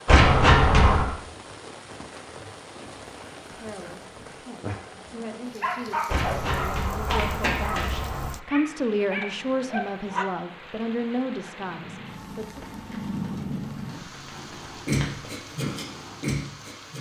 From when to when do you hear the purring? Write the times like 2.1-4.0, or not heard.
11.6-16.9.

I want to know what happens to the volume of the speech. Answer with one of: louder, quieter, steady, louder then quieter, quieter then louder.
louder.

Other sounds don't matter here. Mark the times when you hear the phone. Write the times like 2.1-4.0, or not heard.
not heard.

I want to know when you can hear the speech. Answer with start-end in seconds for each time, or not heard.
3.5-12.7.